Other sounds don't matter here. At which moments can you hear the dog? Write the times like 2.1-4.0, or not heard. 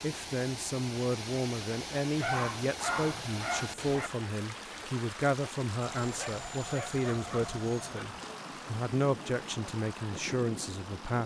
2.1-4.1, 6.0-8.1.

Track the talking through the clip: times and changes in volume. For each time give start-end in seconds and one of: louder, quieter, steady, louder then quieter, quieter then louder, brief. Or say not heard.
0.0-11.2 steady.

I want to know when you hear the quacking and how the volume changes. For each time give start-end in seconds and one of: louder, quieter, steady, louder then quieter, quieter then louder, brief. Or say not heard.
not heard.